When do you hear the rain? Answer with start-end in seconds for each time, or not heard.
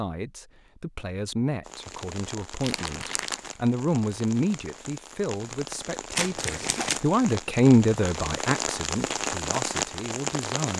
1.6-10.7.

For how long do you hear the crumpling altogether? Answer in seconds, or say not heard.
2 s.